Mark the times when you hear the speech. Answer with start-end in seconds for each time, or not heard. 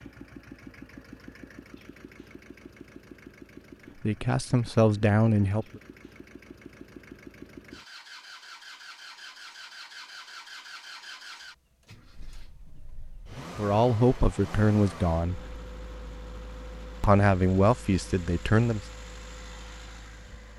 4.0-5.8, 13.6-15.6, 17.0-18.9.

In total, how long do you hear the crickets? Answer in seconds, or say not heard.
not heard.